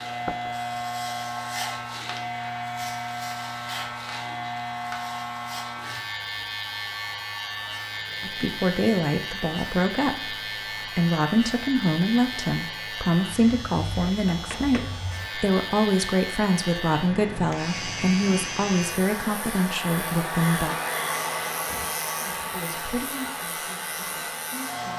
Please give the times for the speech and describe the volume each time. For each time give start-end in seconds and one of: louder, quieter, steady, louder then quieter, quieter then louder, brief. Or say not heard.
8.2-20.8 steady
22.1-24.9 brief.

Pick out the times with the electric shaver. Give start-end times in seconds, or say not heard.
0.0-24.9.